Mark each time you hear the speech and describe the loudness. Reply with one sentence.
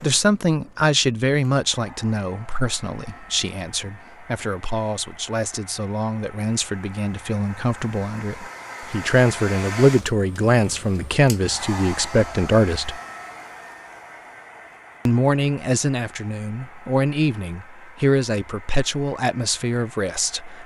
The speech can be heard from 0.0 to 13.0 s, getting quieter then louder; and from 15.1 to 20.6 s, at a steady volume.